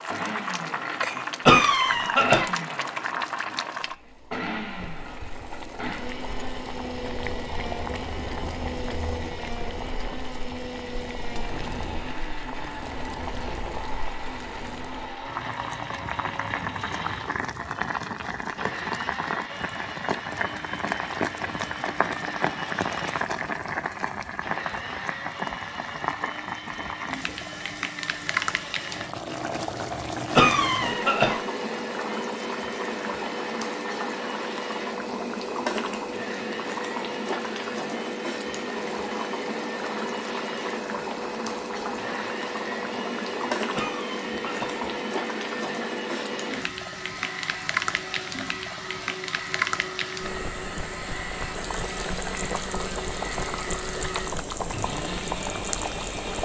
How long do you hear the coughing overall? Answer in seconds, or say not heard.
3 s.